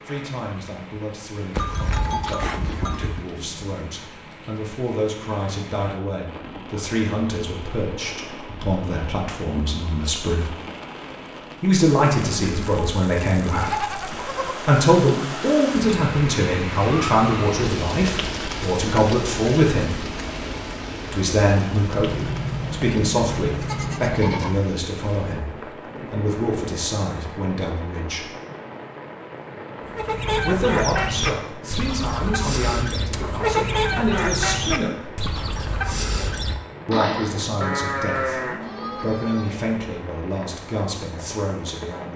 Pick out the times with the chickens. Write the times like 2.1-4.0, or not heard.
29.8-37.5.